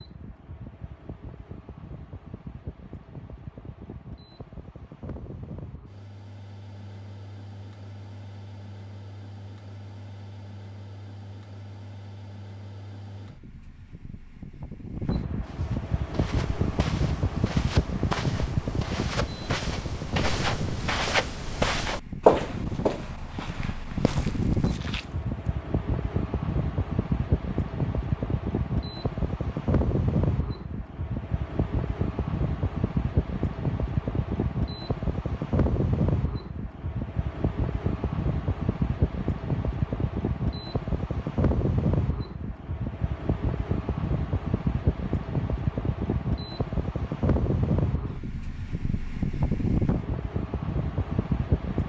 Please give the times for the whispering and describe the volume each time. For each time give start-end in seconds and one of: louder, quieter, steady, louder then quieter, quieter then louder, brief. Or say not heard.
not heard.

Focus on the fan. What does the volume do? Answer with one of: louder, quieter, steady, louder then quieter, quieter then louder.
louder.